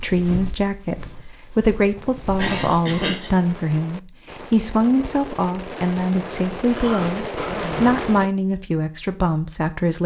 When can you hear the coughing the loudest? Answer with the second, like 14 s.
3 s.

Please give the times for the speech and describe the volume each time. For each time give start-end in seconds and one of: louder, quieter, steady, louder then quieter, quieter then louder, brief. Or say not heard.
0.0-10.0 steady.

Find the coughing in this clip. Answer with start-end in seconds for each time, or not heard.
2.4-3.3, 6.8-8.0.